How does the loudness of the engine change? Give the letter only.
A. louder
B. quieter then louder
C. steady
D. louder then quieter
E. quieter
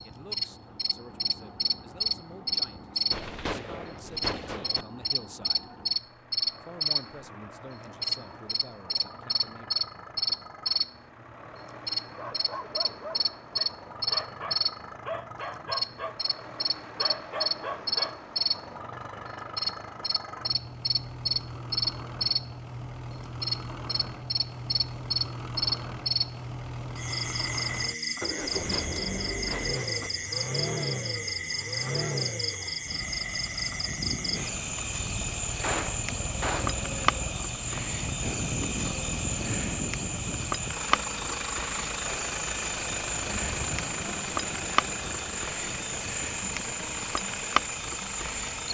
A.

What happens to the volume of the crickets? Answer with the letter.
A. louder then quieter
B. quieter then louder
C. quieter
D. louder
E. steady
E.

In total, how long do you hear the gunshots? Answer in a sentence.
You can hear the gunshots for 5 seconds altogether.